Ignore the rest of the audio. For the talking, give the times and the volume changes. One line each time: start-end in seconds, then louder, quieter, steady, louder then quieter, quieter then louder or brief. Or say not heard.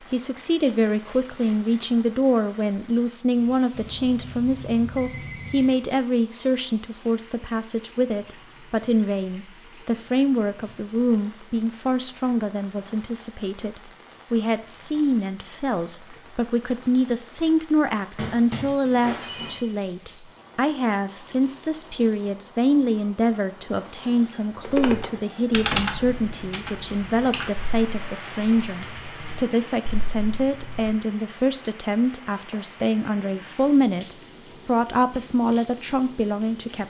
0.1-36.8 steady.